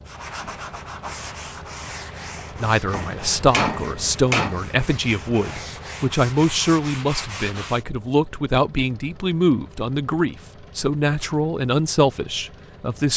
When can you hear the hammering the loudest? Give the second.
4 s.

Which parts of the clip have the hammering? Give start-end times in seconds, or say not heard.
2.9-4.6.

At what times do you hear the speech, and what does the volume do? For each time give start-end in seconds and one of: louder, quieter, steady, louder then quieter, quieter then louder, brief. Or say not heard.
2.5-13.1 steady.